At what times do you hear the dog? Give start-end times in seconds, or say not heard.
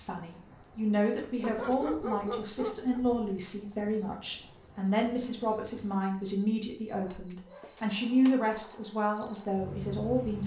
1.4-3.3, 7.0-8.3.